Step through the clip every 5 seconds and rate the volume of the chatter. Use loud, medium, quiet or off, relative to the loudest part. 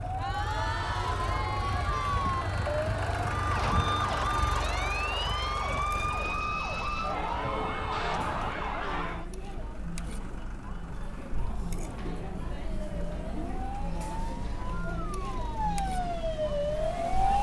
loud, medium, loud, loud.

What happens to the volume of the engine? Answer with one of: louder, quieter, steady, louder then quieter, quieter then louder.
quieter.